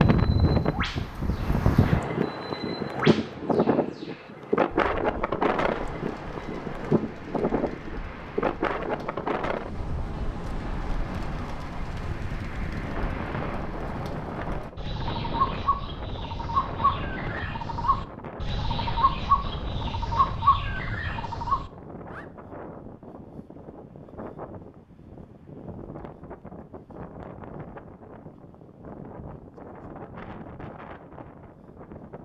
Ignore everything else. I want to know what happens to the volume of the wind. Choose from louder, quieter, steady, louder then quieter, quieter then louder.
quieter.